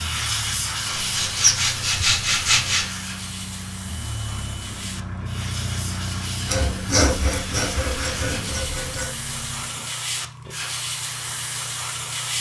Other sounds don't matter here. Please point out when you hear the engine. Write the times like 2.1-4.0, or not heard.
0.0-9.9.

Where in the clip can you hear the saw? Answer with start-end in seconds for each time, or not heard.
0.8-2.9, 6.5-9.1.